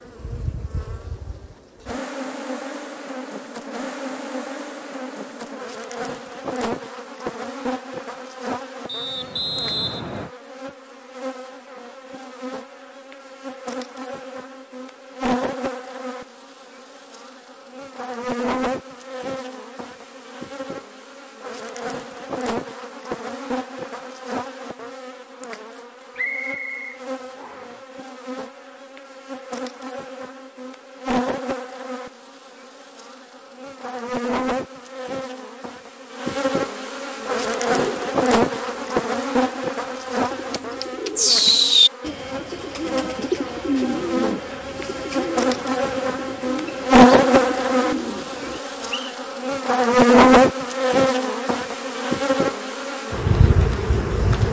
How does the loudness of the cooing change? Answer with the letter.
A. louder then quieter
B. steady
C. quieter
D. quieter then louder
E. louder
A.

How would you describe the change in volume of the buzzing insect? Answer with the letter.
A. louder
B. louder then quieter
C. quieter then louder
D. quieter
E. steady
A.